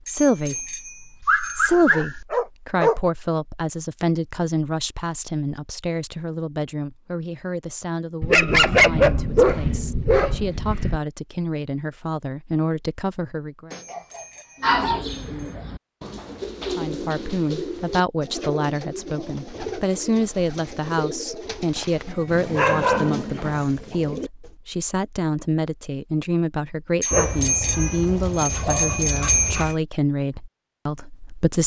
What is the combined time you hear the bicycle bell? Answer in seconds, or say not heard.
6 s.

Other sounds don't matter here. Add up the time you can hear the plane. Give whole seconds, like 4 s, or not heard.
not heard.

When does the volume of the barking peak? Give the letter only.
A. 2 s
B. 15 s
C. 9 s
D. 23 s
C.